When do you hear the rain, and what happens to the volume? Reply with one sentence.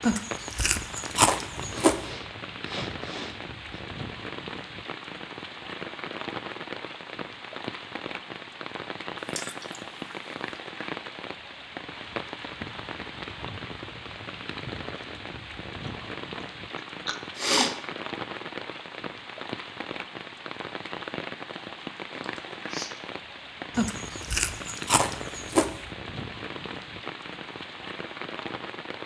The rain can be heard from 0.0 to 29.0 s, at a steady volume.